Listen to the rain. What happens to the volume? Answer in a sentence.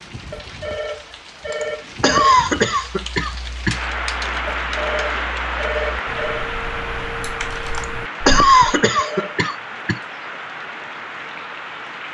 The loudness of the rain goes up, then down.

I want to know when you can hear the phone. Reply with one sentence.
You can hear the phone from 0.3 to 2.4 s, from 4.5 to 6.5 s and from 8.7 to 9.4 s.